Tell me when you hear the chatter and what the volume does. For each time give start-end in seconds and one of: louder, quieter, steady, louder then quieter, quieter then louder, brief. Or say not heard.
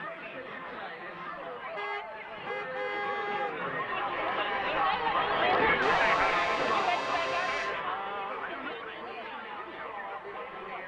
0.0-10.8 louder then quieter.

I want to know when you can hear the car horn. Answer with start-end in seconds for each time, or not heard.
1.8-3.6, 5.8-7.8.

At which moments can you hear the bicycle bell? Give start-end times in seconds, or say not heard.
not heard.